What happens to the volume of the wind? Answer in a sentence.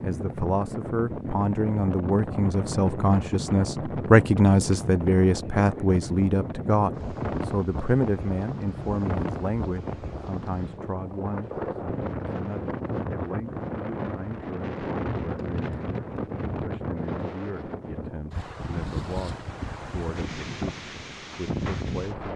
The loudness of the wind stays about the same.